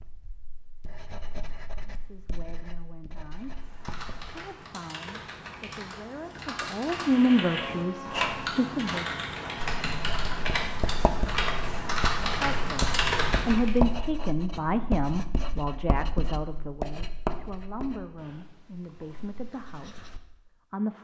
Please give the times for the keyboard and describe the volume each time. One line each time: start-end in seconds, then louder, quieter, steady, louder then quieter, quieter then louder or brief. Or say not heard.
3.4-13.8 louder.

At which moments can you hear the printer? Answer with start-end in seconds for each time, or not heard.
7.0-9.8.